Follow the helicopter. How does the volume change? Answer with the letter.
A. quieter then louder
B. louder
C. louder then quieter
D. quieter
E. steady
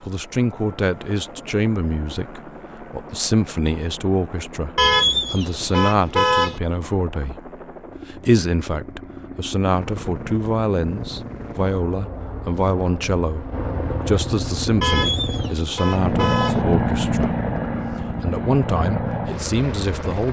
B.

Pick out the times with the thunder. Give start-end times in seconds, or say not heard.
not heard.